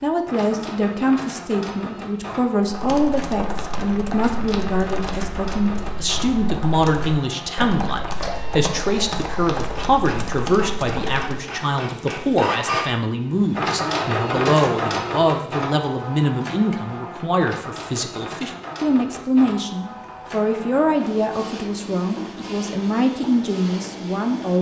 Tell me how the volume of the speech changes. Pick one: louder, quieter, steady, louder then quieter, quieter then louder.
steady.